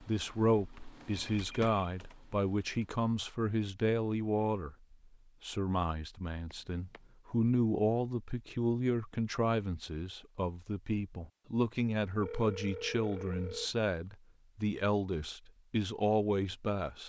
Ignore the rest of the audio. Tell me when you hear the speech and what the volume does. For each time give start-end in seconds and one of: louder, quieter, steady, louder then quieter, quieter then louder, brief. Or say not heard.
0.0-17.0 steady.